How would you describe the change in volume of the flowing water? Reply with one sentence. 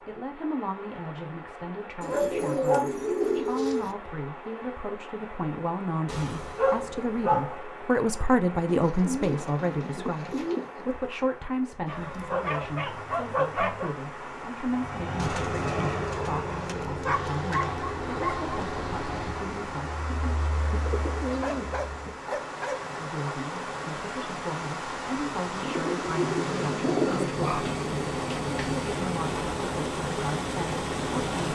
The volume of the flowing water goes up.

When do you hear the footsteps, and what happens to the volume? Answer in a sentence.
The footsteps can't be heard in this clip.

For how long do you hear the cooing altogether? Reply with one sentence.
The cooing can be heard for 9 seconds in total.